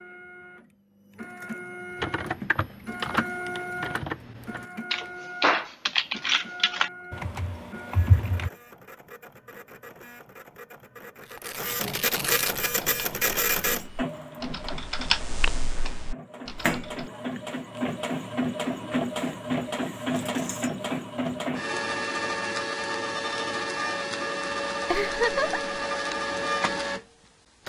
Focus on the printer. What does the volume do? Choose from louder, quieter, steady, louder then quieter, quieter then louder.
quieter then louder.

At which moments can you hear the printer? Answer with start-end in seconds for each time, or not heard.
0.0-27.6.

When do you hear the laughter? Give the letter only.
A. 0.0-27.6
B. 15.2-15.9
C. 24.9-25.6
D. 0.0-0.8
C.